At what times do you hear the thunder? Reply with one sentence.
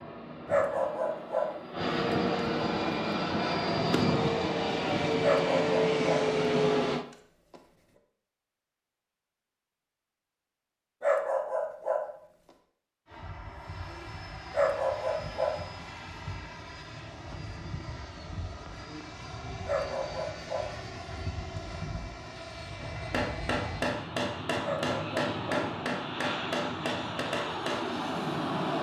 The thunder can't be heard in this clip.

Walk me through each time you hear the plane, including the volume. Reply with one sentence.
You can hear the plane from 0.0 to 7.0 s, getting louder; and from 13.1 to 28.7 s, getting louder.